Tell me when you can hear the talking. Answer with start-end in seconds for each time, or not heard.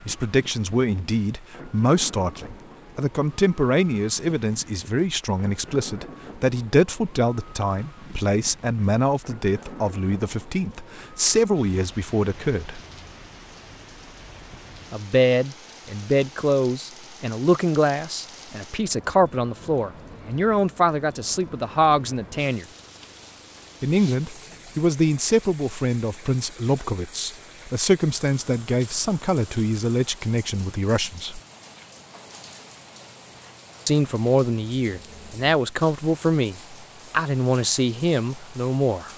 0.1-12.8, 14.9-22.6, 23.8-31.4, 33.9-39.1.